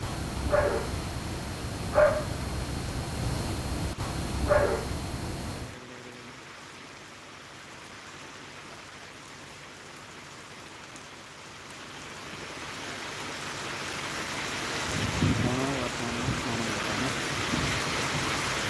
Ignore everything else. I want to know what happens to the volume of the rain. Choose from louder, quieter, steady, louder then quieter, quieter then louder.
louder.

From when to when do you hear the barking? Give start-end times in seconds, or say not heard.
0.0-5.8.